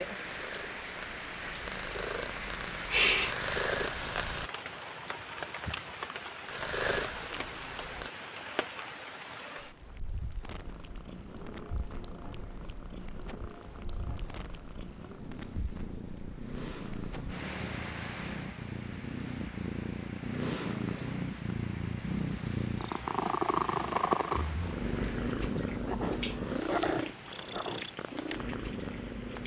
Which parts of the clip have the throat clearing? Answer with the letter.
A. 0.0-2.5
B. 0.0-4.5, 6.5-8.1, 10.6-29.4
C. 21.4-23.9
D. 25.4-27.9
D.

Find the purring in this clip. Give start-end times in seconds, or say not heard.
0.0-4.5, 6.5-8.1, 10.6-29.4.